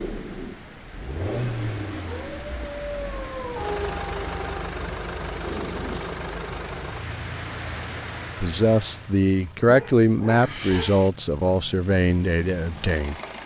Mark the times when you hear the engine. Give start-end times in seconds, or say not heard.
0.0-13.4.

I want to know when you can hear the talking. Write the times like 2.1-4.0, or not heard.
8.4-13.2.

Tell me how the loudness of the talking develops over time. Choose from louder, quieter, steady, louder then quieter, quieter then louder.
louder then quieter.